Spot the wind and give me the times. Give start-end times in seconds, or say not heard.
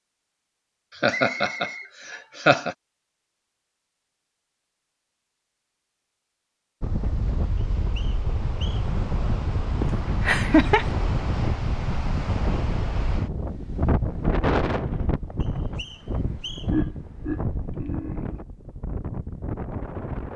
6.8-20.3.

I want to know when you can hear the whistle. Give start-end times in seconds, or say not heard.
1.1-1.9, 7.5-8.8, 15.4-16.9.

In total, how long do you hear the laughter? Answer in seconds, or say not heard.
5 s.